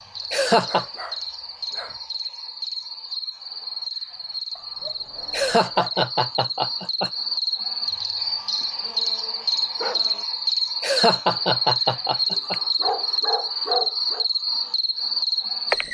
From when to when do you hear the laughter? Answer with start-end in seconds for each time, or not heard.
0.3-0.8, 5.3-7.1, 10.8-12.6.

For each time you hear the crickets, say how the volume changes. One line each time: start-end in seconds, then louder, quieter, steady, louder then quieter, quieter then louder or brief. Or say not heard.
0.0-15.9 louder.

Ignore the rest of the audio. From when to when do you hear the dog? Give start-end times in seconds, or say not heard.
0.2-2.0, 4.5-6.1, 8.2-10.2, 12.3-14.2.